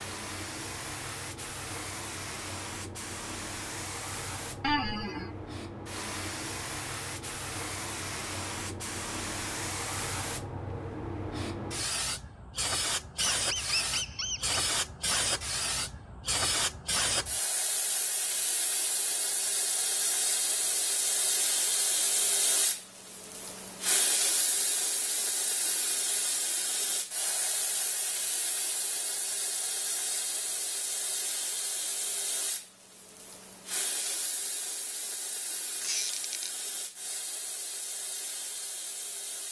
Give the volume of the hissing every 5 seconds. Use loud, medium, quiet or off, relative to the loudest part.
medium, medium, loud, loud, loud, loud, medium, medium.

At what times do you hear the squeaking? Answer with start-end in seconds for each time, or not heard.
4.6-5.3, 13.3-14.6, 35.8-36.5.